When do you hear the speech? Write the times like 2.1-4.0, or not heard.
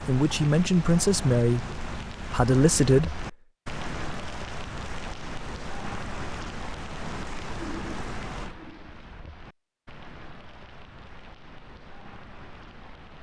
0.1-3.2.